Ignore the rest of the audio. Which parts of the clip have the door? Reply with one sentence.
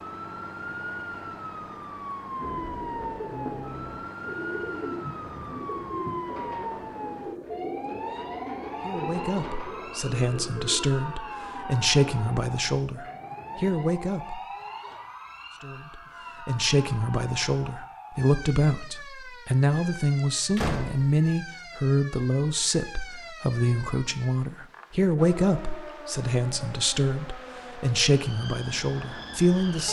You can hear the door from 20.6 to 21.2 s.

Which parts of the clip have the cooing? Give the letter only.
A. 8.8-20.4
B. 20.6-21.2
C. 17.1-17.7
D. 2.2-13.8
D.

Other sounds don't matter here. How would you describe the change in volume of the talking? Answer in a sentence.
The loudness of the talking stays about the same.